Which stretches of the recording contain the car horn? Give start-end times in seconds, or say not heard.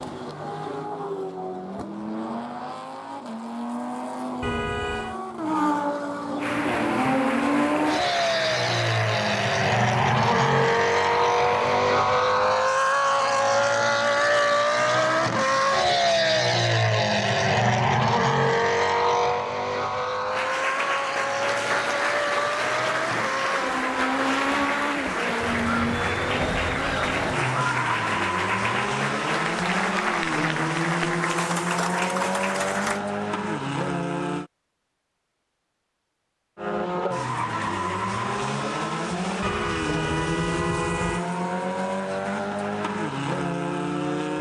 4.4-5.2, 39.4-41.2.